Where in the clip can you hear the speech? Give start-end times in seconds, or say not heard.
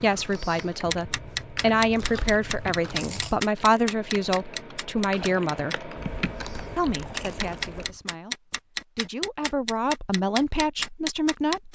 0.0-5.9, 6.8-11.6.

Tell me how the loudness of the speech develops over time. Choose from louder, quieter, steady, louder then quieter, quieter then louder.
quieter then louder.